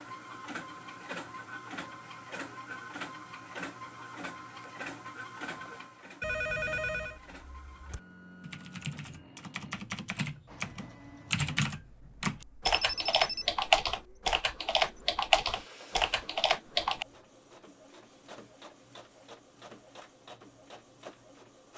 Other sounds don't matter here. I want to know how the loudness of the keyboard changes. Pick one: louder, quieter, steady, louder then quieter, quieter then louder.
louder.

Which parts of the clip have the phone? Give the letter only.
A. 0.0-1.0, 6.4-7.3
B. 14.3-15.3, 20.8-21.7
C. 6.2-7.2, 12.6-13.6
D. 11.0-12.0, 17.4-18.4
C.